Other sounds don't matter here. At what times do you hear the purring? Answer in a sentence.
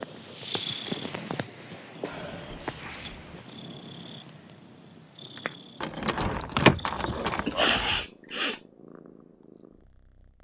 You can hear the purring from 0.0 to 10.3 s.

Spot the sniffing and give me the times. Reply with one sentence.
The sniffing can be heard from 7.3 to 8.6 s.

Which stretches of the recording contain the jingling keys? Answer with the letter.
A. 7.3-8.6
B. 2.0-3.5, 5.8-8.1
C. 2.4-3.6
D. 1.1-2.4
B.